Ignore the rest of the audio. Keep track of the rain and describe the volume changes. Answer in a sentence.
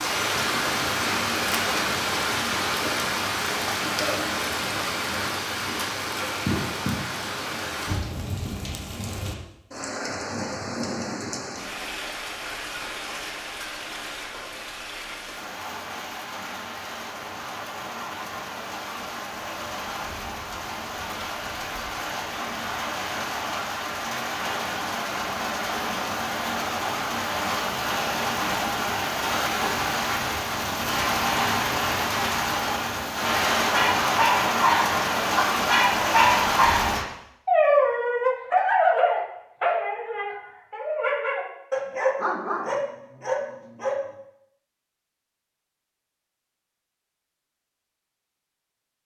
The volume of the rain goes down, then up.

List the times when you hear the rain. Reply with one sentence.
The rain can be heard from 0.0 to 37.0 s.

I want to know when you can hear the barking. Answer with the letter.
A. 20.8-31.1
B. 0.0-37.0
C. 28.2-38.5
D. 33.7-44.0
D.